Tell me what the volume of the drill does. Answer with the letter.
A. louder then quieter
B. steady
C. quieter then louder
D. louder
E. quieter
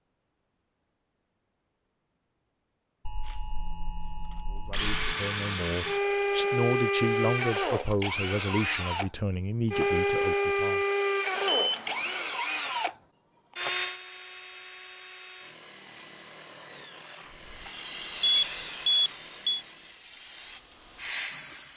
E.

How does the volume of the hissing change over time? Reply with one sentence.
The volume of the hissing goes down, then up.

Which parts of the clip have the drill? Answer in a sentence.
The drill can be heard from 3.2 to 20.1 s.